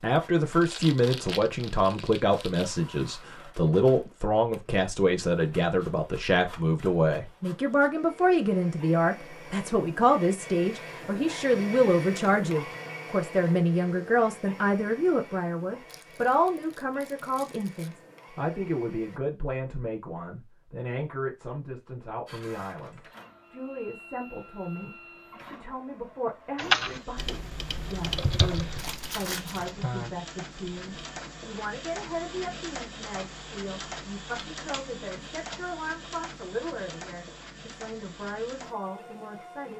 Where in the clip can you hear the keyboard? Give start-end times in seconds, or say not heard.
26.6-30.9.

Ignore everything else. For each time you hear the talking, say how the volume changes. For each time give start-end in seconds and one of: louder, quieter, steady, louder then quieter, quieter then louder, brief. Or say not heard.
0.0-39.7 quieter.